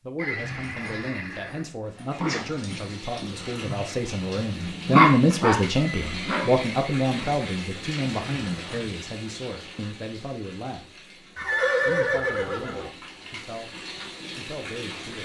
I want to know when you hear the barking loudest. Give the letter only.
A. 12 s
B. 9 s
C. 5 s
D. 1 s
C.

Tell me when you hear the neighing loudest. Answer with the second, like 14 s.
12 s.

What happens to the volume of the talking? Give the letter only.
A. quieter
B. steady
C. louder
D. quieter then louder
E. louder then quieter
E.